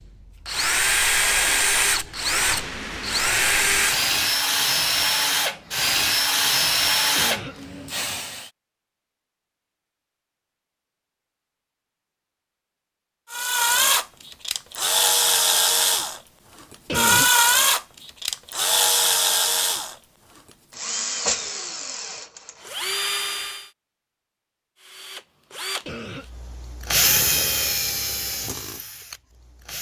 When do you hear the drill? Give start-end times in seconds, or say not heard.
0.1-8.5, 13.3-23.7, 24.8-29.7.